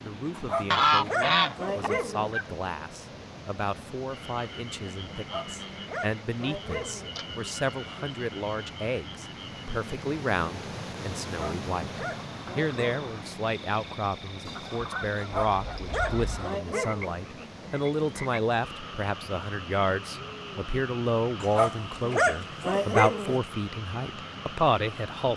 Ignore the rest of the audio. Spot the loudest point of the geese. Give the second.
1 s.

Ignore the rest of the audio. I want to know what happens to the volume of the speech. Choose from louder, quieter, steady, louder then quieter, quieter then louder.
louder.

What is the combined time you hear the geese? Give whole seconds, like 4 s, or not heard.
4 s.